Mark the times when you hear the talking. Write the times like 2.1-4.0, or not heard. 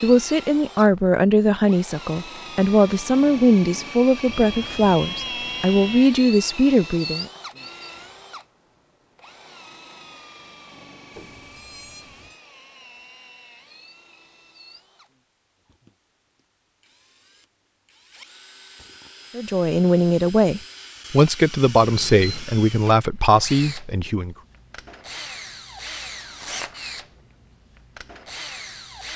0.0-7.2, 19.4-24.4.